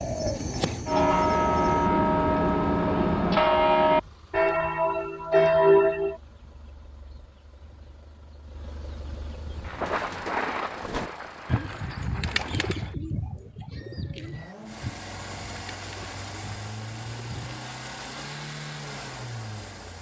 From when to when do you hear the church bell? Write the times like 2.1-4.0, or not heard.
0.8-6.2.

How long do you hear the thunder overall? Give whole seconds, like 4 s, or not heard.
3 s.